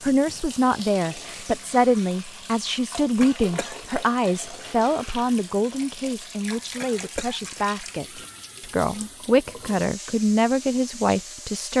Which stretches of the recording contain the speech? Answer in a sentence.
You can hear the speech from 0.0 to 11.7 s.